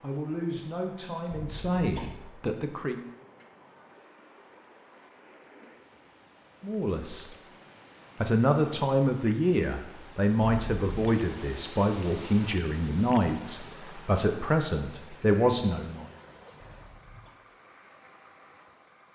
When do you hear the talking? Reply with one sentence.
You can hear the talking from 0.0 to 3.0 s, from 6.6 to 7.3 s and from 8.2 to 16.1 s.